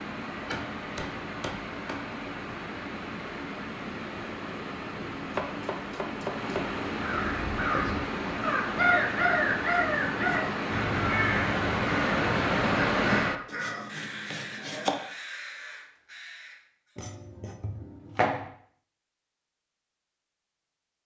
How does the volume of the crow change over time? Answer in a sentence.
The loudness of the crow goes down.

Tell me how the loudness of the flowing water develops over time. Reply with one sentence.
The volume of the flowing water goes up.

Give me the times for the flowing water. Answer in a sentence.
The flowing water can be heard from 0.0 to 13.4 s.